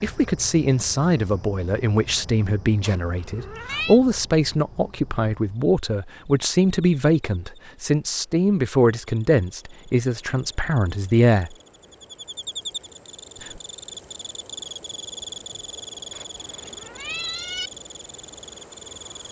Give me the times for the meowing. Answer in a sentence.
The meowing can be heard from 2.8 to 4.0 s and from 16.1 to 17.7 s.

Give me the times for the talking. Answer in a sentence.
You can hear the talking from 0.0 to 11.6 s.